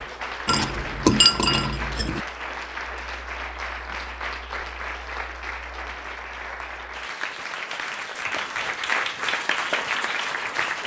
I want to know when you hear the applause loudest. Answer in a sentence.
The loudest moment of the applause is at 9 seconds.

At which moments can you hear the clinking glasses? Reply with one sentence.
The clinking glasses can be heard from 0.5 to 2.2 s.